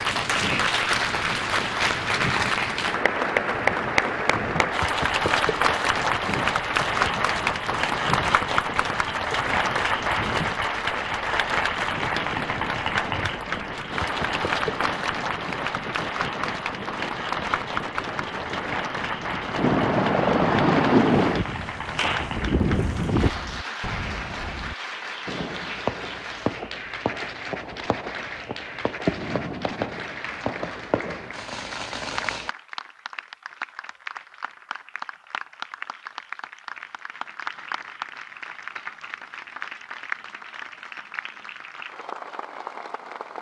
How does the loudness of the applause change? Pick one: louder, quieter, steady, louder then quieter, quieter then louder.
quieter.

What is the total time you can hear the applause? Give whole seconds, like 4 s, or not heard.
43 s.